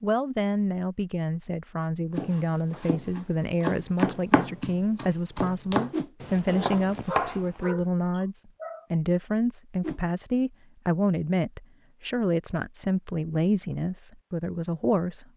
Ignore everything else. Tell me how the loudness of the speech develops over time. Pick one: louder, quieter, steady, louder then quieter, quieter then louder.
steady.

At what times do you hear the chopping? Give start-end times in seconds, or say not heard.
2.1-7.8.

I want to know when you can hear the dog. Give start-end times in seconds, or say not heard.
7.0-8.8.